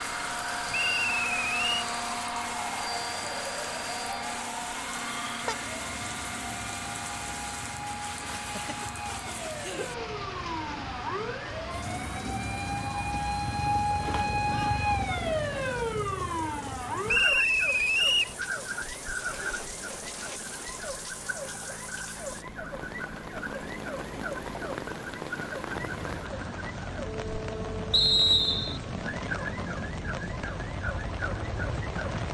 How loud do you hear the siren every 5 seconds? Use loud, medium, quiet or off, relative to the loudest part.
medium, medium, loud, loud, medium, medium, medium.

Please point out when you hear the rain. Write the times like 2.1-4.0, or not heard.
0.0-32.2.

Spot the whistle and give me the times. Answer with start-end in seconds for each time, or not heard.
0.7-1.9, 17.1-18.4, 27.9-28.8.